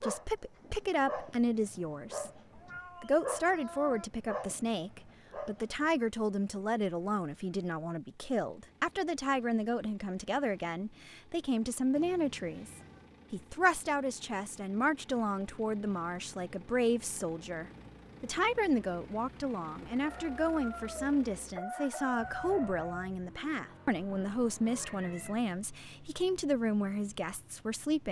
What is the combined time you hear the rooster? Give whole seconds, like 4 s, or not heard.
3 s.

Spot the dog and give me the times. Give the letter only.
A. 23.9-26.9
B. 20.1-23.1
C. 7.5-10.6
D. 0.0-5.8
D.